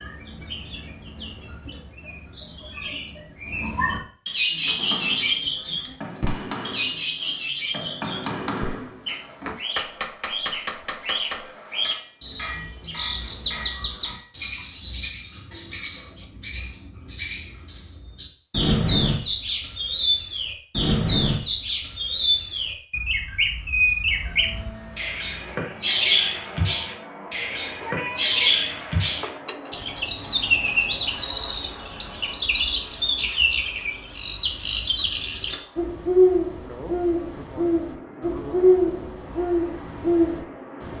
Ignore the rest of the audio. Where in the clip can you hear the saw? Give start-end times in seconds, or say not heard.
not heard.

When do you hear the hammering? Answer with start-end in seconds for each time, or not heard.
4.6-14.3.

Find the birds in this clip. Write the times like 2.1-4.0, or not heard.
0.0-40.9.